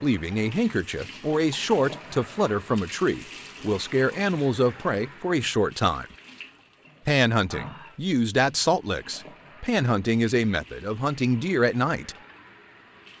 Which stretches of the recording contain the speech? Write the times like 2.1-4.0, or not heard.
0.0-6.0, 7.0-12.2.